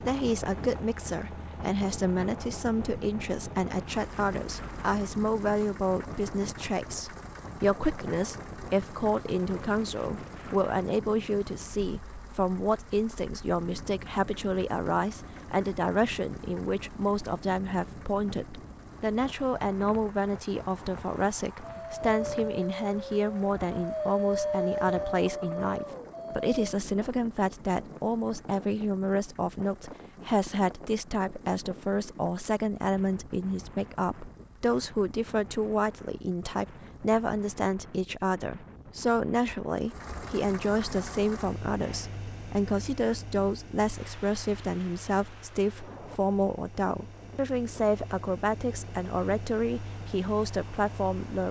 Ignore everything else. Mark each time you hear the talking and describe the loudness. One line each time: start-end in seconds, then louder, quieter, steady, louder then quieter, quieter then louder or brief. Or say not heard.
0.0-51.4 steady.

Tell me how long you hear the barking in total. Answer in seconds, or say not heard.
5 s.